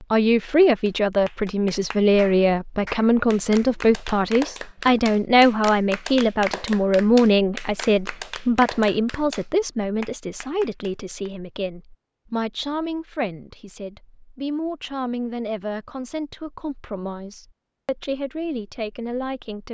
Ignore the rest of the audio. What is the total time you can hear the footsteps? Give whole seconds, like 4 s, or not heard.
not heard.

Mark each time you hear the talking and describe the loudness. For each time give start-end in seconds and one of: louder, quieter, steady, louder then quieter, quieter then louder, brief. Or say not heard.
0.0-19.7 quieter.